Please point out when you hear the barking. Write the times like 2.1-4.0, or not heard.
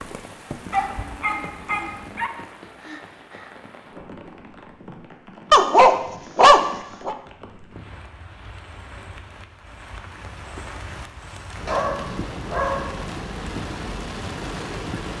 0.7-2.3, 5.5-7.2, 11.7-13.0.